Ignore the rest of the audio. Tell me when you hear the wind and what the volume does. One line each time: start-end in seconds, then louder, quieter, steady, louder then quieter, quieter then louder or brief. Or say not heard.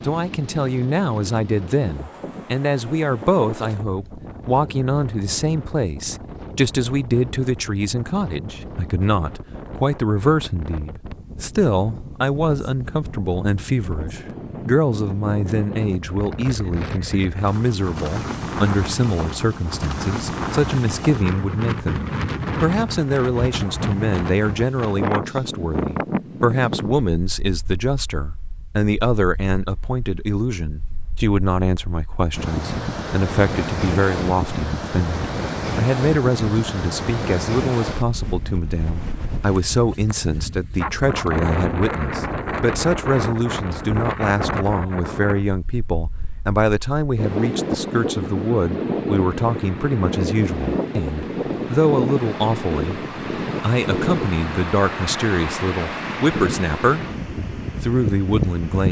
0.0-58.8 louder.